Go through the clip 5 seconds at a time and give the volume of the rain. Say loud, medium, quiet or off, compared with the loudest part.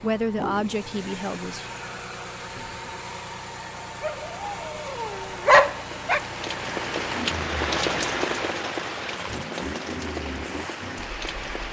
off, loud, medium.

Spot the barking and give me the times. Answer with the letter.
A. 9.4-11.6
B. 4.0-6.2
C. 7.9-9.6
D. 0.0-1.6
B.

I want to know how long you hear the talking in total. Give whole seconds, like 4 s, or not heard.
2 s.